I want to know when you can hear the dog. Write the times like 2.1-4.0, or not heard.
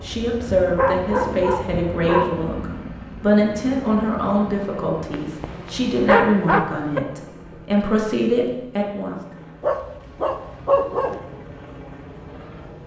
0.8-2.3, 5.1-7.0, 9.6-11.2.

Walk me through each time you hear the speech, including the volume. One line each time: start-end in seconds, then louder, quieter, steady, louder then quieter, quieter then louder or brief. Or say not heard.
0.0-9.2 steady.